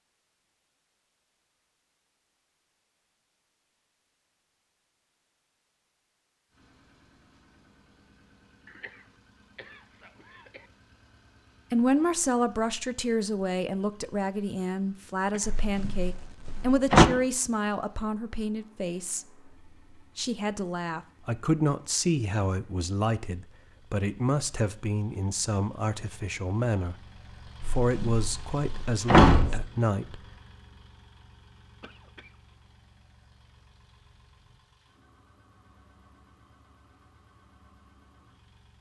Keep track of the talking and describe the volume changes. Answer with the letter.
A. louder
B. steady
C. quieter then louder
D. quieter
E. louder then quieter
B.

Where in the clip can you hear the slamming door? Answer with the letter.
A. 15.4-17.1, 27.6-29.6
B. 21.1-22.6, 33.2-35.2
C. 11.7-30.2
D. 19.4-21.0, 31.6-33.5
A.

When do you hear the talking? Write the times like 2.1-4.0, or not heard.
11.7-30.2.